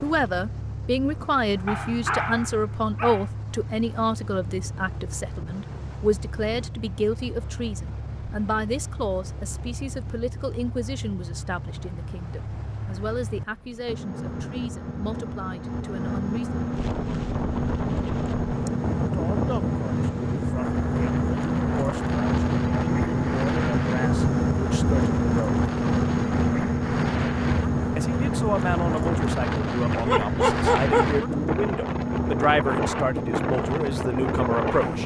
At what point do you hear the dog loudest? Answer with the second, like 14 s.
31 s.